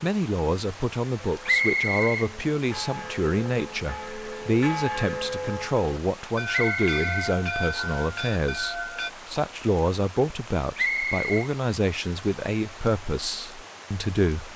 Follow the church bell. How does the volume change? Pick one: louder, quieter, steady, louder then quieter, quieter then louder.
louder.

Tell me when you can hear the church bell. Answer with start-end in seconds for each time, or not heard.
1.3-9.1.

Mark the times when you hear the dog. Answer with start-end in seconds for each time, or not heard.
not heard.